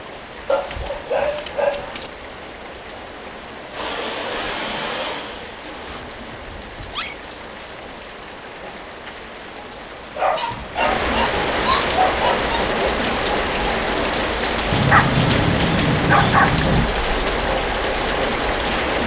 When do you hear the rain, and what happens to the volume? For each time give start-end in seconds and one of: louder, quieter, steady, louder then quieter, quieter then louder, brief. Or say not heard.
0.0-19.0 louder.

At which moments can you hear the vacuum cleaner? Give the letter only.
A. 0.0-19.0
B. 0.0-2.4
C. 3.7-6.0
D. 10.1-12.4
C.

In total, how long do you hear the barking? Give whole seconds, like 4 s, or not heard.
7 s.